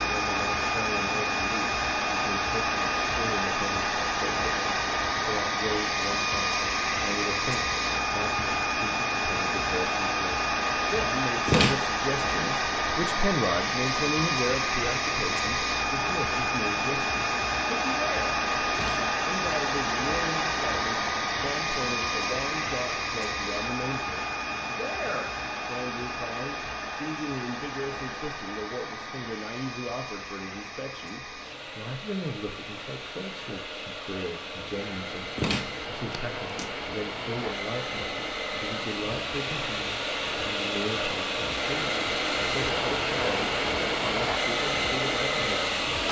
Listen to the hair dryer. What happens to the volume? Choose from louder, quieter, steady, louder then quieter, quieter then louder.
quieter then louder.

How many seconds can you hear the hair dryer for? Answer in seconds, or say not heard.
46 s.